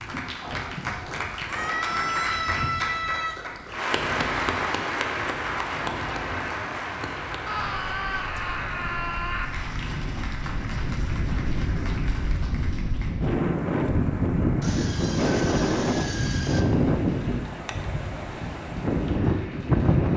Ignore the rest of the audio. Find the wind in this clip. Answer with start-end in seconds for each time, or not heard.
0.0-20.1.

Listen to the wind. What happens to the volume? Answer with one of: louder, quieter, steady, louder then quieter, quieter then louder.
louder.